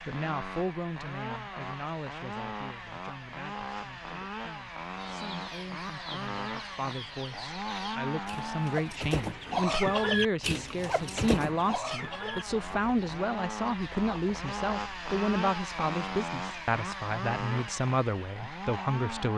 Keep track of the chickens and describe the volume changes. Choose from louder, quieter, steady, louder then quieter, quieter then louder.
louder then quieter.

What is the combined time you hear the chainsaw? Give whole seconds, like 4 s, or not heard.
19 s.